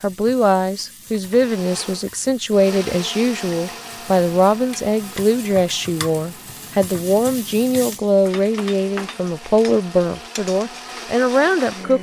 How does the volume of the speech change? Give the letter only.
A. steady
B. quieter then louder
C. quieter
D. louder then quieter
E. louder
A.